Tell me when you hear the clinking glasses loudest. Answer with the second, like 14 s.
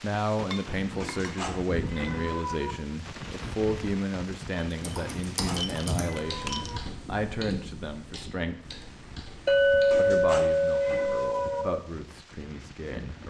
10 s.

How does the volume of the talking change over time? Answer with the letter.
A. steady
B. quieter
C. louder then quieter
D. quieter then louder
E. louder
B.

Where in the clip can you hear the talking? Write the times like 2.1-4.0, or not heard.
0.0-8.8, 9.9-13.2.